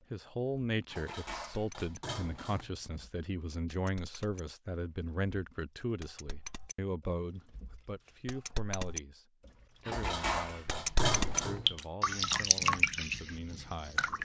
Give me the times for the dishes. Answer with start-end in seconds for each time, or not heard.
0.8-2.9, 9.8-11.8.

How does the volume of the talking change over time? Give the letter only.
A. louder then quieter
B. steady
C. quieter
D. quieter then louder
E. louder
C.